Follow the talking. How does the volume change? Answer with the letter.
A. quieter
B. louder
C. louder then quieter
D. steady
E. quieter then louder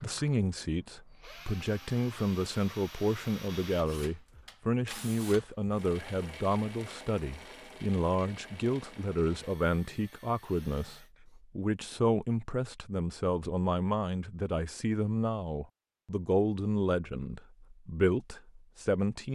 D.